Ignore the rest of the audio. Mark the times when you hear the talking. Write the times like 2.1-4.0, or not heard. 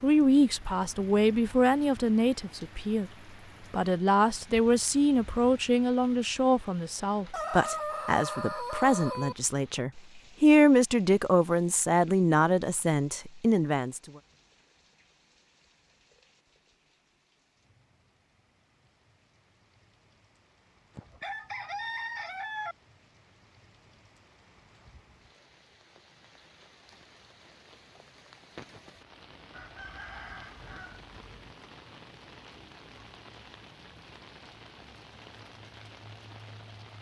0.0-3.1, 3.7-14.0.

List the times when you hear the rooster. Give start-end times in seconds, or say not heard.
7.3-9.3, 20.9-22.8, 29.5-31.6.